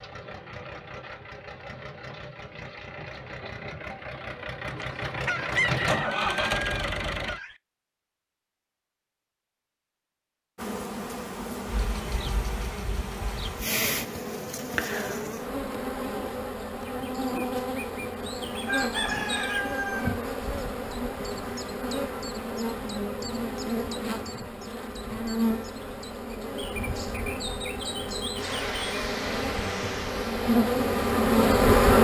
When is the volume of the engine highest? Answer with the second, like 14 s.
6 s.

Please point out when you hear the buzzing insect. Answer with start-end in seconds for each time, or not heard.
10.6-32.0.